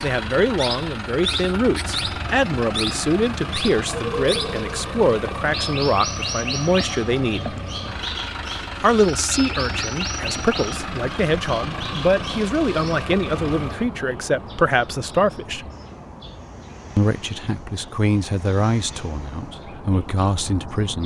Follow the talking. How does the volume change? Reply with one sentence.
The loudness of the talking stays about the same.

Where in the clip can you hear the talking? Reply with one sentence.
You can hear the talking from 0.0 to 7.5 s, from 8.8 to 15.7 s and from 16.9 to 21.0 s.